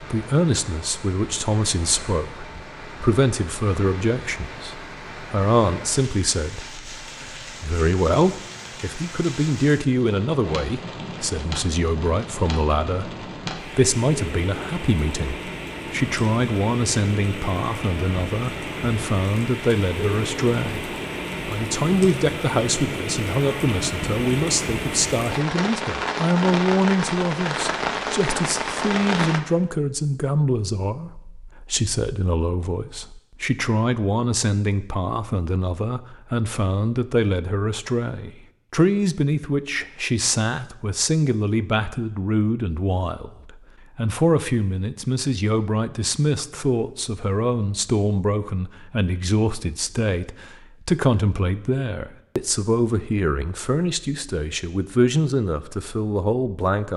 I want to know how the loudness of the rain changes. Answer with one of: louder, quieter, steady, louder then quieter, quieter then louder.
louder.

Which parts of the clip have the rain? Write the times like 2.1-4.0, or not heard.
0.0-29.4.